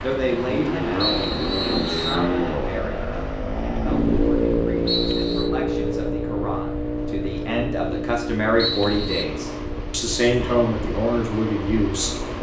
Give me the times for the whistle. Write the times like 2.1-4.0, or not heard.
1.0-2.3, 4.8-5.5, 8.6-9.2.